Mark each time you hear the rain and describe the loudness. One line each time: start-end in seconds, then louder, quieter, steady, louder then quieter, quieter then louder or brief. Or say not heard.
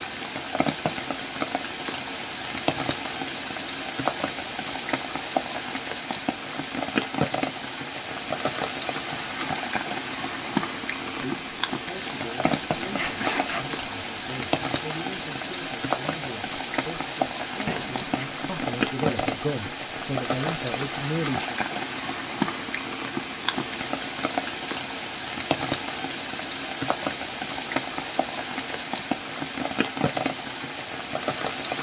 0.0-31.7 steady.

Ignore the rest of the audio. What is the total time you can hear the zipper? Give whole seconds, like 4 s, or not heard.
2 s.